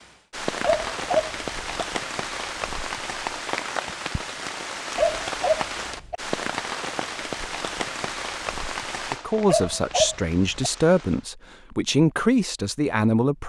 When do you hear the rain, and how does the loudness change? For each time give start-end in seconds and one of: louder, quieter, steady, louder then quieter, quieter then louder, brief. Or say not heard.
0.0-11.3 quieter.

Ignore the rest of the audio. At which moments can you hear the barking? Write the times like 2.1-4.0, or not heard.
0.6-1.9, 5.0-6.2, 9.4-10.7.